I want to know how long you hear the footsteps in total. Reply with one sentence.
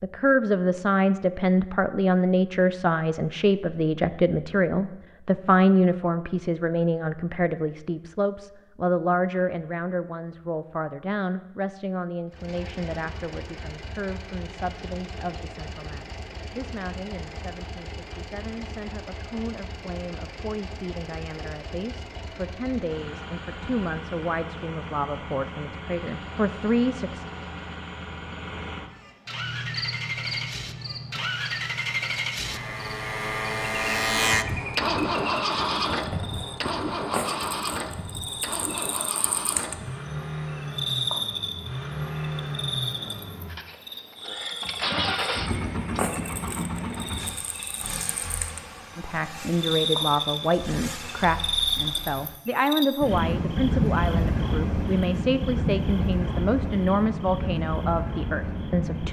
You can't hear the footsteps here.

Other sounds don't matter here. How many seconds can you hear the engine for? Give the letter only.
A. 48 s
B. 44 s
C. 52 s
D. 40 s
D.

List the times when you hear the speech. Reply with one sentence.
The speech can be heard from 0.0 to 27.2 s and from 49.0 to 59.0 s.